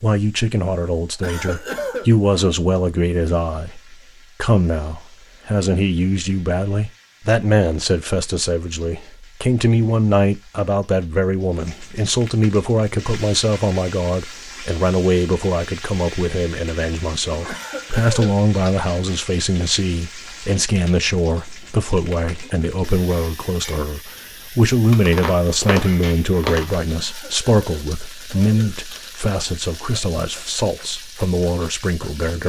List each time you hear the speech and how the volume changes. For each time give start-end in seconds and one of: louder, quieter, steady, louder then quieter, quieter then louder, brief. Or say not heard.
0.0-32.4 steady.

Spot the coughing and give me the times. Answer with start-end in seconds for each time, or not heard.
1.2-2.1, 17.4-18.4, 26.9-28.8.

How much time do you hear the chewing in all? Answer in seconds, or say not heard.
2 s.